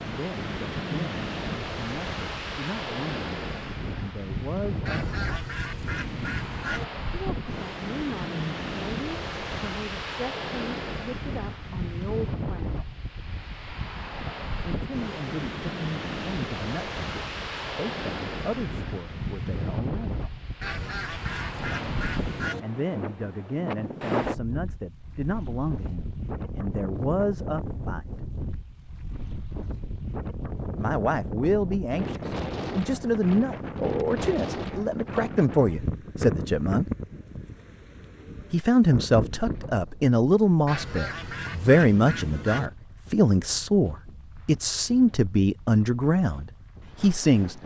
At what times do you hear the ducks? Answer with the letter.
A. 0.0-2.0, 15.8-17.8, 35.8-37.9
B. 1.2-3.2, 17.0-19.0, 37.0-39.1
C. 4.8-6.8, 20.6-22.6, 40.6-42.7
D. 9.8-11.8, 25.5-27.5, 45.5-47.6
C.